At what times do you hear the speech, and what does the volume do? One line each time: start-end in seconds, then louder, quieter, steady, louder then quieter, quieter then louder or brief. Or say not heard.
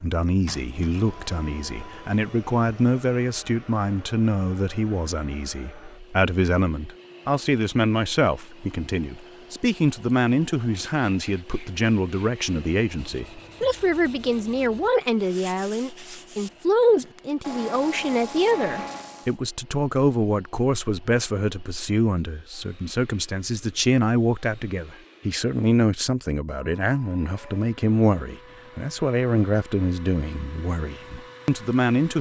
0.0-32.1 steady.